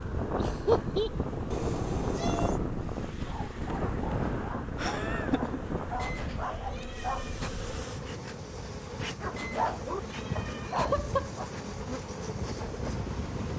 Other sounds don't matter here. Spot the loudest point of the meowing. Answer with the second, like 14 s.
2 s.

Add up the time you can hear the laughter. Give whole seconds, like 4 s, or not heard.
2 s.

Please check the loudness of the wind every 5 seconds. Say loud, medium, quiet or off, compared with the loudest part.
loud, medium, medium.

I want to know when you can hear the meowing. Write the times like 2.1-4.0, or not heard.
1.5-2.6, 6.0-7.5, 9.3-10.8.